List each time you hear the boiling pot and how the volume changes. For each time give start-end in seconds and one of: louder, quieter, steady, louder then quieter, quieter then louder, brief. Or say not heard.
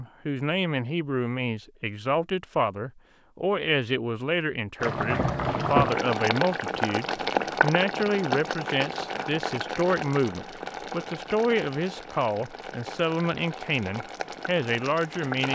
4.8-15.4 quieter.